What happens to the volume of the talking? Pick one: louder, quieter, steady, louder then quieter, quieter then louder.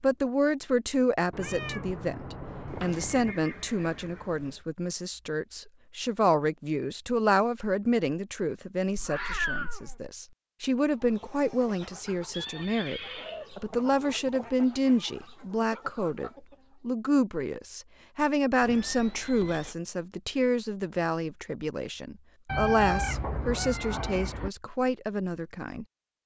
steady.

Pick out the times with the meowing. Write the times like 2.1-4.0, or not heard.
1.3-3.4, 8.9-10.1, 22.4-24.5.